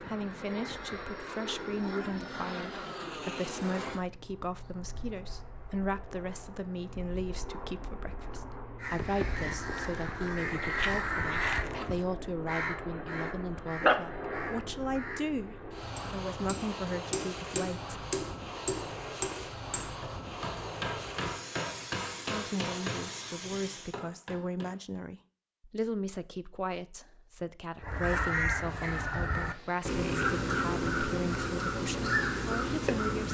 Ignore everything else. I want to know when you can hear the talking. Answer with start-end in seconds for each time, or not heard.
0.0-17.9, 22.2-33.2.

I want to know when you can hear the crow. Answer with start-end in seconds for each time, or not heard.
8.8-15.3, 27.8-33.2.